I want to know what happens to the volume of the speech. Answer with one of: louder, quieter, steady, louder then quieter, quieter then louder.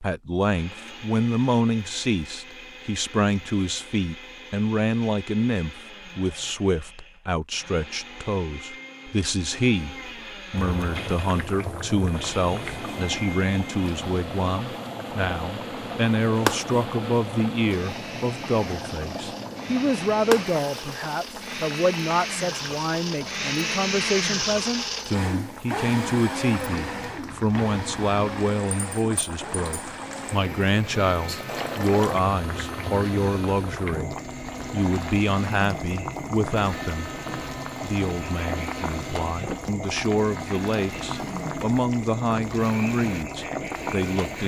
steady.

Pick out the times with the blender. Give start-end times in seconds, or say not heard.
0.0-44.4.